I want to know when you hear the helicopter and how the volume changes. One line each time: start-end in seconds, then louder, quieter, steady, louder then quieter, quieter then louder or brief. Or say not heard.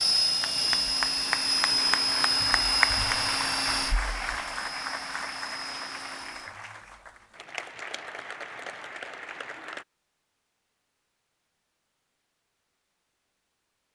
0.0-6.5 quieter.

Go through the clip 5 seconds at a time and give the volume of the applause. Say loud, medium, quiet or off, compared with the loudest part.
loud, medium, off.